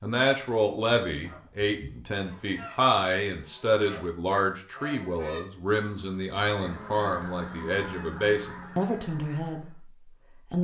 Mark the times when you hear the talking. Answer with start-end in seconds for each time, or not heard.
0.0-9.9.